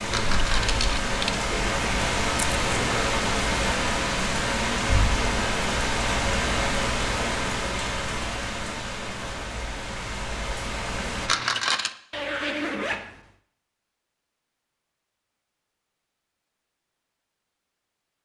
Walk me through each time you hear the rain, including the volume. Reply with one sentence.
The rain can be heard from 0.0 to 11.3 s, getting quieter.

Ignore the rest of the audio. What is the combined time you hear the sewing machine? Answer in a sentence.
You can't hear the sewing machine here.